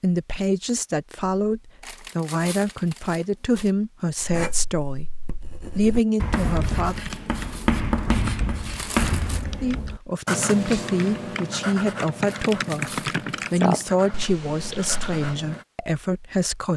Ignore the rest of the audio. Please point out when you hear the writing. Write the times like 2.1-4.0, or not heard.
4.2-15.7.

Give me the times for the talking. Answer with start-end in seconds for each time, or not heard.
0.0-5.0, 5.8-7.0, 9.6-16.7.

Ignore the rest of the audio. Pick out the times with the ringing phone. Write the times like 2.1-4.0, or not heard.
not heard.